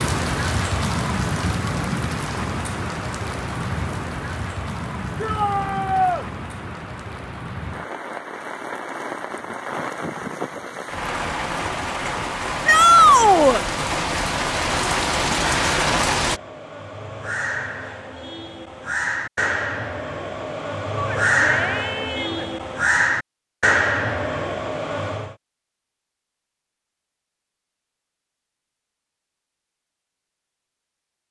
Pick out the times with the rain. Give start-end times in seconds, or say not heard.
0.0-16.4.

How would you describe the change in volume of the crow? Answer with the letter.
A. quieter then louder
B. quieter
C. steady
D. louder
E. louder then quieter
D.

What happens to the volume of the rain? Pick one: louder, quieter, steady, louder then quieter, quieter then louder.
quieter then louder.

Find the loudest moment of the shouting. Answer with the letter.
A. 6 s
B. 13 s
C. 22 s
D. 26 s
B.